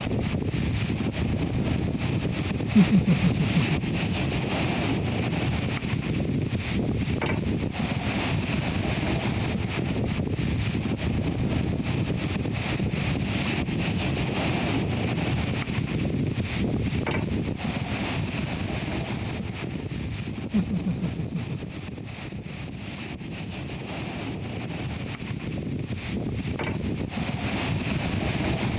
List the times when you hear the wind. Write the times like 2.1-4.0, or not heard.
0.0-28.7.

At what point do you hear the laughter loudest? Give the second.
3 s.